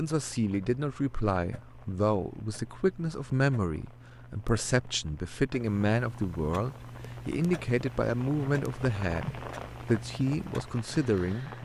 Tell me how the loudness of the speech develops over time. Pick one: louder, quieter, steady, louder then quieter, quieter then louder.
steady.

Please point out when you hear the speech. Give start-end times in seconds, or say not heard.
0.0-11.6.